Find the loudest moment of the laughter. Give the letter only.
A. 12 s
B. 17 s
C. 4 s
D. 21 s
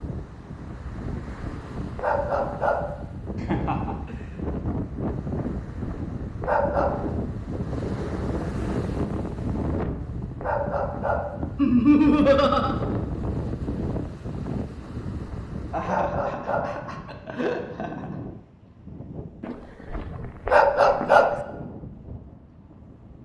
A.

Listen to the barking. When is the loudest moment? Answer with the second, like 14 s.
21 s.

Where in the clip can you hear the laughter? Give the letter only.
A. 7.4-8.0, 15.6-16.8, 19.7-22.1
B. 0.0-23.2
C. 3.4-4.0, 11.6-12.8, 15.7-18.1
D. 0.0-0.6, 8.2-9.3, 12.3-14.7
C.